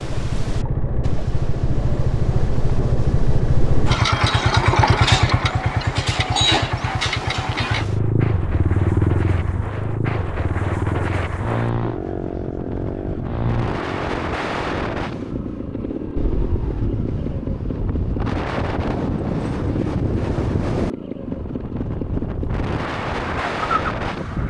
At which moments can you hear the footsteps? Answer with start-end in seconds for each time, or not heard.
not heard.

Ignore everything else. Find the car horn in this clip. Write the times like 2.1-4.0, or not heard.
not heard.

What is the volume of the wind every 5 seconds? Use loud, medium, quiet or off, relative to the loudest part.
medium, medium, loud, loud, loud.